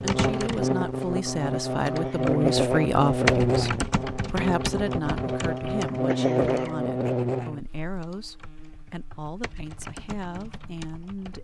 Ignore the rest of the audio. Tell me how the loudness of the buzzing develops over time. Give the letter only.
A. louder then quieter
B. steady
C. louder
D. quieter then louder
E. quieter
E.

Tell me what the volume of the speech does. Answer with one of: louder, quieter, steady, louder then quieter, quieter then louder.
quieter.